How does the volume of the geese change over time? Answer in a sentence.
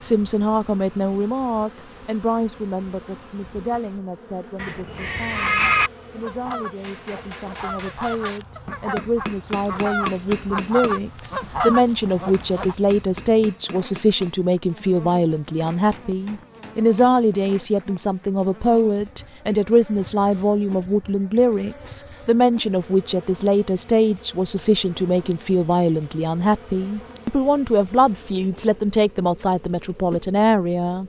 The volume of the geese goes up.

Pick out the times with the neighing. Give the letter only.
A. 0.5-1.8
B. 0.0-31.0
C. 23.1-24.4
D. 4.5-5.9
D.